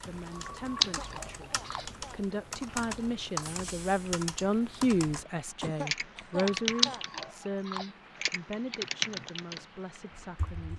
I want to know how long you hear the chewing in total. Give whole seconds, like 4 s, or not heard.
3 s.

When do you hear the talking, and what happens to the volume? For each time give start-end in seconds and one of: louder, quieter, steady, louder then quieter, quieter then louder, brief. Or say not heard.
0.0-10.7 louder then quieter.